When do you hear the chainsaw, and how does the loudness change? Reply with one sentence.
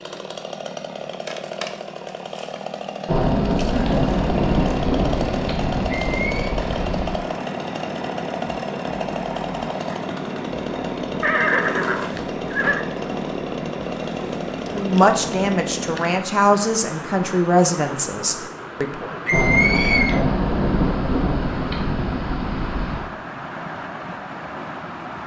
You can hear the chainsaw from 0.0 to 16.1 s, at a steady volume.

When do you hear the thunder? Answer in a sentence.
You can hear the thunder from 3.0 to 7.2 s and from 19.3 to 23.1 s.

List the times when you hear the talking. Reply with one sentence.
You can hear the talking from 14.7 to 19.1 s.